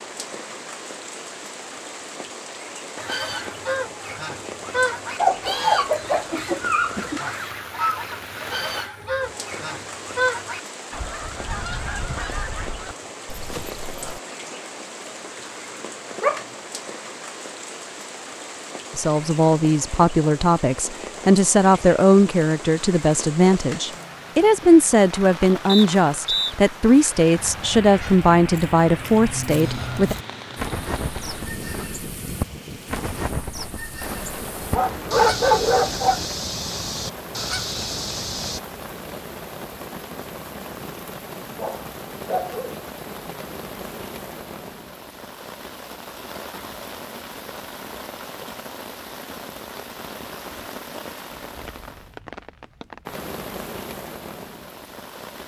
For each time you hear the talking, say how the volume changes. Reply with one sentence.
The talking can be heard from 18.9 to 30.1 s, at a steady volume.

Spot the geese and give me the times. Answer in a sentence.
The geese can be heard from 3.0 to 14.2 s and from 27.4 to 38.6 s.